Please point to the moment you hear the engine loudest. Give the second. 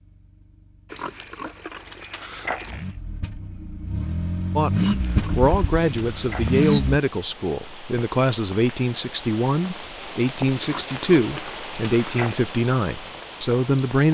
5 s.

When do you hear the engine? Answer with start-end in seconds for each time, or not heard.
0.0-7.0.